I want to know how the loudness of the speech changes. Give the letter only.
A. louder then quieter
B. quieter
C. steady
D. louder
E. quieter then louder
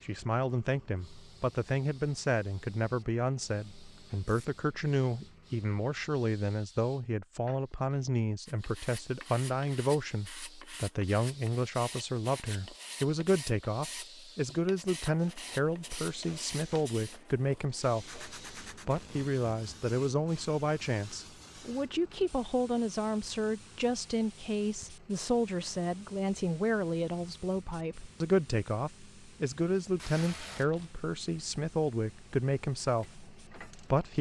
C.